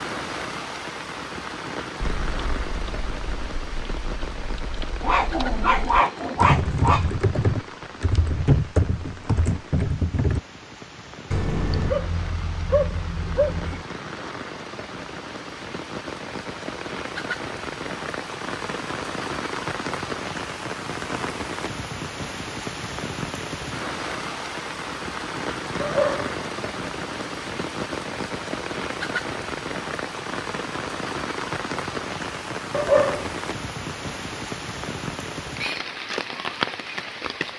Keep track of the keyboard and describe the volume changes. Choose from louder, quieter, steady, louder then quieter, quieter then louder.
louder.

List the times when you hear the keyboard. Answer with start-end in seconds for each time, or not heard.
2.0-10.4.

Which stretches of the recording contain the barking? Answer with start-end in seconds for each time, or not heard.
5.0-7.0, 11.3-13.8, 25.8-26.3, 32.7-33.4.